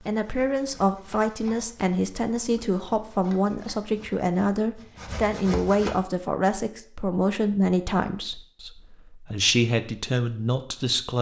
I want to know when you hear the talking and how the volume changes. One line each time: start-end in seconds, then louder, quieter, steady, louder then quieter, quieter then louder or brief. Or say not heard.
0.1-11.1 steady.